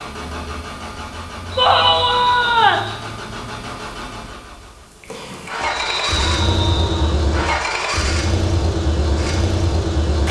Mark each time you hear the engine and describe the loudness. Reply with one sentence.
You can hear the engine from 0.0 to 10.2 s, getting louder.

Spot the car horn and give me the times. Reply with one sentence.
You can't hear the car horn here.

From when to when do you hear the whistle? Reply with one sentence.
The whistle can be heard from 1.5 to 3.0 s and from 5.7 to 7.0 s.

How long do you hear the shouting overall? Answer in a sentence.
The shouting can be heard for 2 seconds in total.